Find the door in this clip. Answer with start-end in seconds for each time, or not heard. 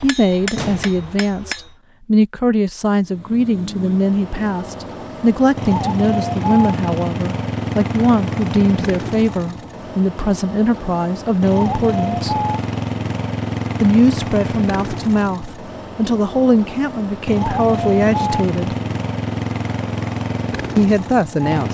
0.6-1.2.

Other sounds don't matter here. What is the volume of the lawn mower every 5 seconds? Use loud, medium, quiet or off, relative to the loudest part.
medium, loud, loud, loud, loud.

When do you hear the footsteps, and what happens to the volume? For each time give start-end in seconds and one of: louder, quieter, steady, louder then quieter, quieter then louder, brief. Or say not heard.
not heard.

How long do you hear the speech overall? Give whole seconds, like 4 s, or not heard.
18 s.